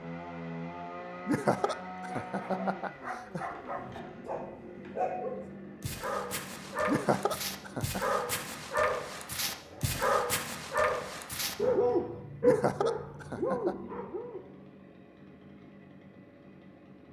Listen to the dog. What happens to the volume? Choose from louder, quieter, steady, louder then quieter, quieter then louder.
louder.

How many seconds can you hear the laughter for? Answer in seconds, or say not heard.
5 s.